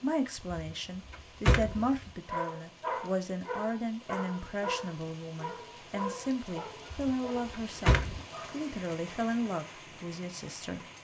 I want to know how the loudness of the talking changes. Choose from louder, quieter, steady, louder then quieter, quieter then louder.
steady.